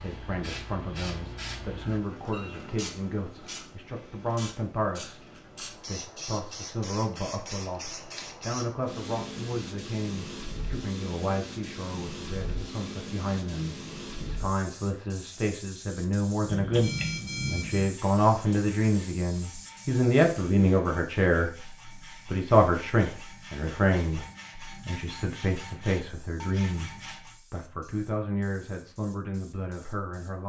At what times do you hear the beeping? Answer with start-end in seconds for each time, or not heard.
16.4-17.9.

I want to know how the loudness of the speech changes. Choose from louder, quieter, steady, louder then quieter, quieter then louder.
louder then quieter.